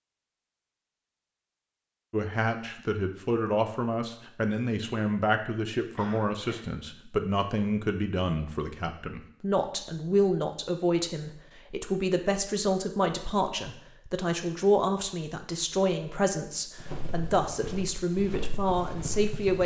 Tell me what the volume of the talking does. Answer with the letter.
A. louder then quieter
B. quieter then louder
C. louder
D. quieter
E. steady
E.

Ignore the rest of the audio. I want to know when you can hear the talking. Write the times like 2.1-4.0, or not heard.
2.1-19.6.